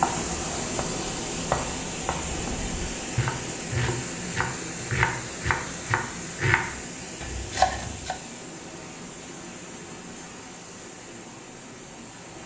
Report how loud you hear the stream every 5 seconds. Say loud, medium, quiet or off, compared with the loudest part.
loud, medium, medium.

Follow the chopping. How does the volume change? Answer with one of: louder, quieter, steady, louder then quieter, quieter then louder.
louder.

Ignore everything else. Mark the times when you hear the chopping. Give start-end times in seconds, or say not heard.
0.0-8.2.